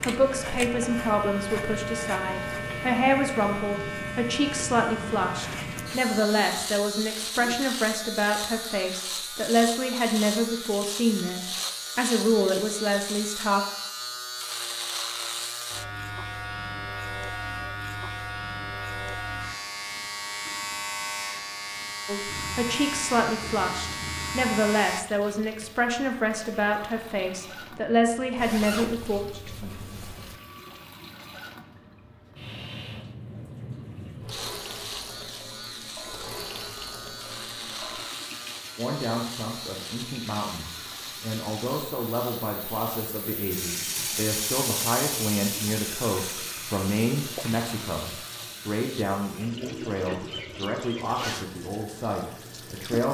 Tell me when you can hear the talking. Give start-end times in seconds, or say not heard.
0.0-13.7, 22.1-29.2, 38.8-53.0.